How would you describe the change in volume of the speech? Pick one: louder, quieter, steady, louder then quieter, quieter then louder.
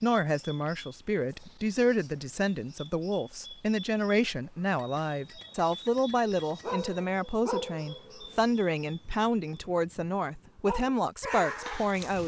steady.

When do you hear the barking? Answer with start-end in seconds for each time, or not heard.
6.6-12.2.